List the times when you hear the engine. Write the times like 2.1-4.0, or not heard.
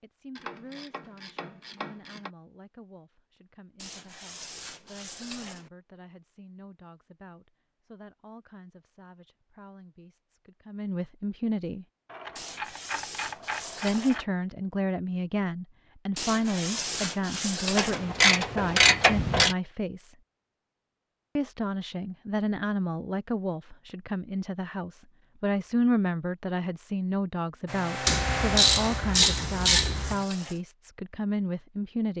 27.6-30.2.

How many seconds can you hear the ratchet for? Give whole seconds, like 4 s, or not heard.
8 s.